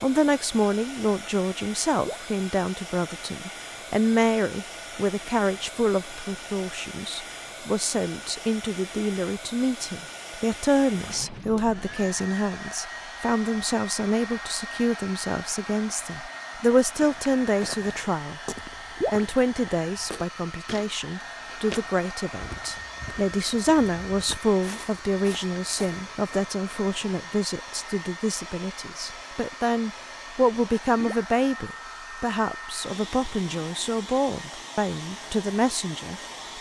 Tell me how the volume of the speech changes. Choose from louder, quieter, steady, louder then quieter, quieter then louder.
steady.